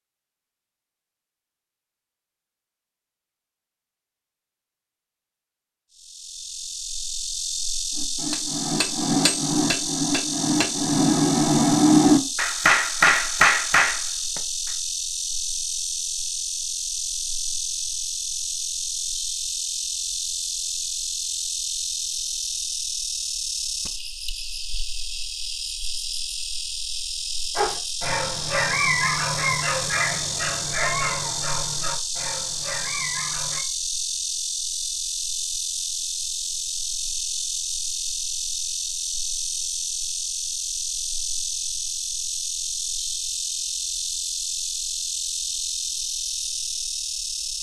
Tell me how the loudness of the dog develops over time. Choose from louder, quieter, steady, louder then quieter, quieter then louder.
quieter.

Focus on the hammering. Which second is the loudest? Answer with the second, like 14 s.
12 s.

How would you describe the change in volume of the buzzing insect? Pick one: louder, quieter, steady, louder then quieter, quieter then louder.
steady.